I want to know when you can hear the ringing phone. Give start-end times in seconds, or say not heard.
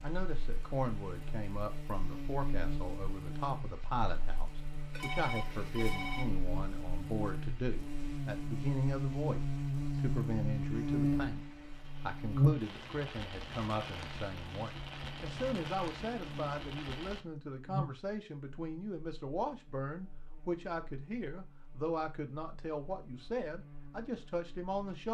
4.9-6.2.